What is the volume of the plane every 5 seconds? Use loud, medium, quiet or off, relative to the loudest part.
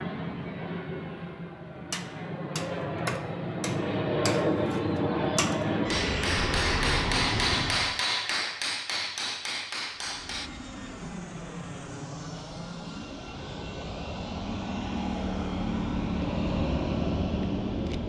loud, loud, medium, loud.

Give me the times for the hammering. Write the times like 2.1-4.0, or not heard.
1.9-10.5.